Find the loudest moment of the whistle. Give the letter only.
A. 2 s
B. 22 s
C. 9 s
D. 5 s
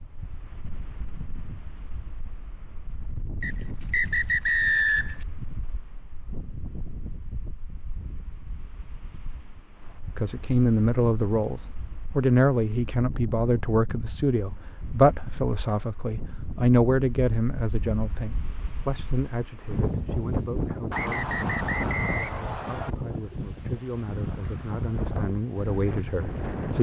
D.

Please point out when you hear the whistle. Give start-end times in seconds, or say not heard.
3.4-5.2, 20.9-22.9.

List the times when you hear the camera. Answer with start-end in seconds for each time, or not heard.
not heard.